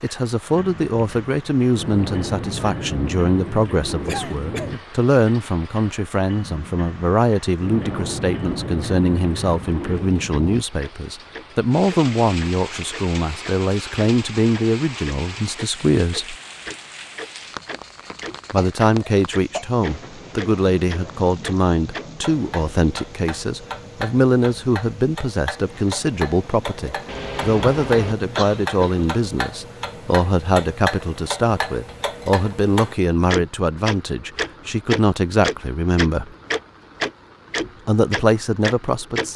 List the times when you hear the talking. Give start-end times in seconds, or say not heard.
0.0-16.4, 18.5-36.3, 37.9-39.3.